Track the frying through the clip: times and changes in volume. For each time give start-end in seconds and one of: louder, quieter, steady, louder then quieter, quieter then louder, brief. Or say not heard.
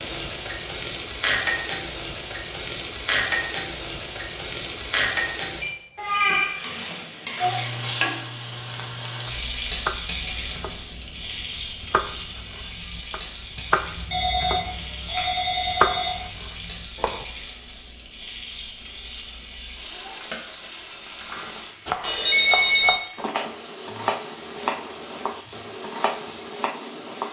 0.0-27.2 quieter.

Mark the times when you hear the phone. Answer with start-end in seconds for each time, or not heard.
5.6-6.5, 14.1-16.2, 22.0-23.0.